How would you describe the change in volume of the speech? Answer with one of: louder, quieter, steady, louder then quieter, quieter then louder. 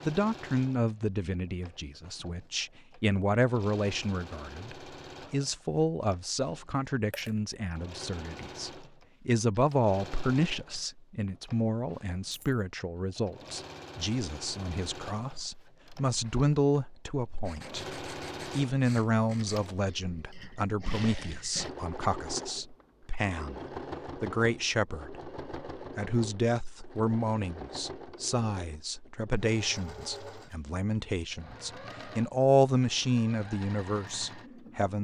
steady.